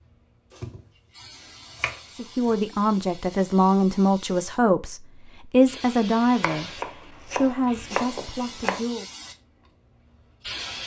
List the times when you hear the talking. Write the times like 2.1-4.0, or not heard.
2.1-9.1.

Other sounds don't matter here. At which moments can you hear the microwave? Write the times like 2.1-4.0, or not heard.
not heard.